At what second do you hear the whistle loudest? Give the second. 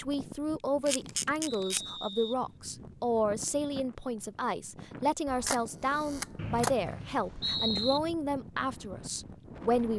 8 s.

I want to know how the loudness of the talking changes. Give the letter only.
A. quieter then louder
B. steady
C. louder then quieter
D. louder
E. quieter
B.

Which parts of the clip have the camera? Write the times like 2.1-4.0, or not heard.
0.8-1.9, 5.2-6.8.